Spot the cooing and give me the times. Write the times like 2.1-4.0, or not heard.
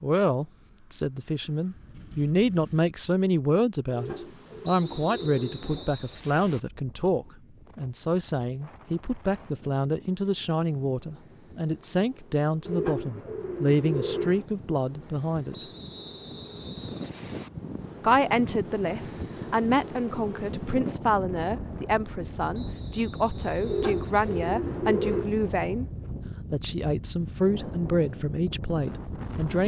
3.9-5.9, 12.7-14.4, 23.6-25.3.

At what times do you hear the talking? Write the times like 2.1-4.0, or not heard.
0.0-15.7, 18.0-25.9, 26.5-29.6.